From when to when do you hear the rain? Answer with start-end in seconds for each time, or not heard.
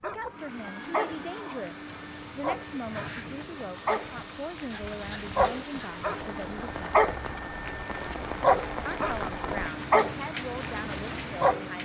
1.9-11.8.